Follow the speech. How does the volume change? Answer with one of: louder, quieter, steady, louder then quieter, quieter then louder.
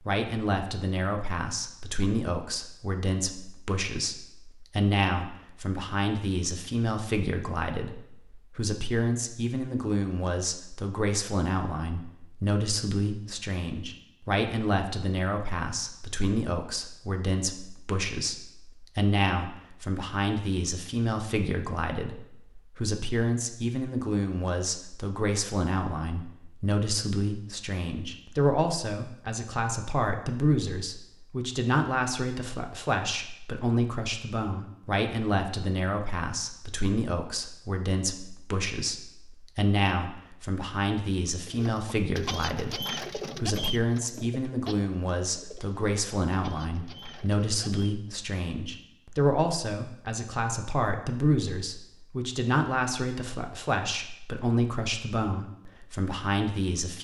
steady.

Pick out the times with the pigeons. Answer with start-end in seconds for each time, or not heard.
41.5-48.1.